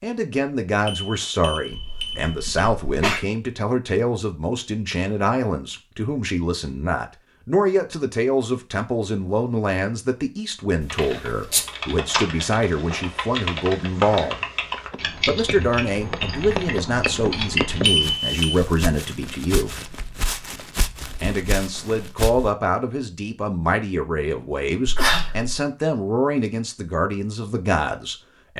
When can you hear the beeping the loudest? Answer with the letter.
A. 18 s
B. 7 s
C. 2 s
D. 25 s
A.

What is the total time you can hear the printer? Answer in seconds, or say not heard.
not heard.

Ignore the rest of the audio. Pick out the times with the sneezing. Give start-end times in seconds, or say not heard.
1.7-3.2, 10.8-11.6, 24.9-25.6.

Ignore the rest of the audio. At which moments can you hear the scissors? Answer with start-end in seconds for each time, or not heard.
not heard.